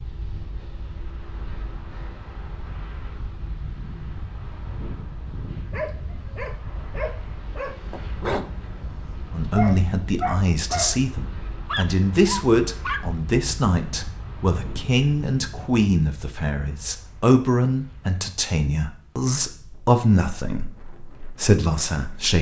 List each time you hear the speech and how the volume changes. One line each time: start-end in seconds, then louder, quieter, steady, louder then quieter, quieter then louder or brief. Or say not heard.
9.3-22.3 steady.